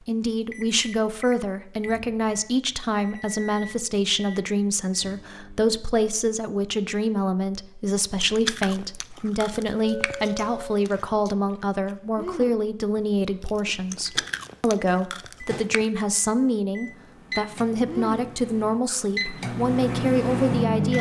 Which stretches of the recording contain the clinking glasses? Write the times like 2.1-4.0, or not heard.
9.8-10.8.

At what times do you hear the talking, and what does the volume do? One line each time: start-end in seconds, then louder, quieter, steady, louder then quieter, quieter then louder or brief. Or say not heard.
0.1-20.9 steady.